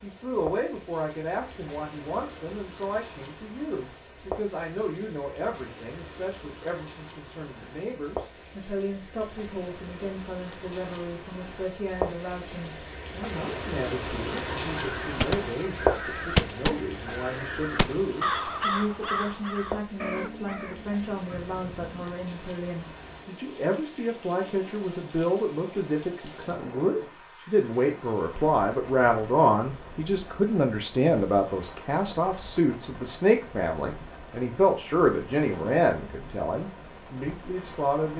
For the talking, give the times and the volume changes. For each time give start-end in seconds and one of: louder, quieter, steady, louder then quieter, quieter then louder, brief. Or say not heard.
0.0-38.1 louder.